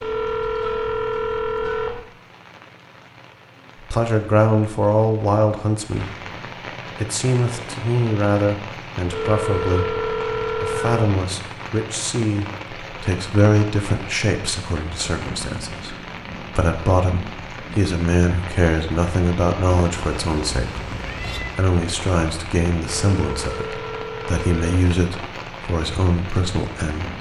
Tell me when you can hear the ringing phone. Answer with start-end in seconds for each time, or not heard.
0.0-2.0, 9.1-11.2, 23.0-24.9.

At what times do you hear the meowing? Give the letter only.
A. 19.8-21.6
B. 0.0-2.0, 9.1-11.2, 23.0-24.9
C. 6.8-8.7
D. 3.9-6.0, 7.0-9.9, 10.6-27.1
A.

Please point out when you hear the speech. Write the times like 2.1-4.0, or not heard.
3.9-6.0, 7.0-9.9, 10.6-27.1.